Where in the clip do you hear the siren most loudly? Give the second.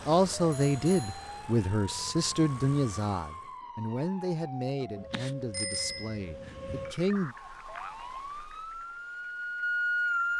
10 s.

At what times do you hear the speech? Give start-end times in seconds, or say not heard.
0.1-7.3.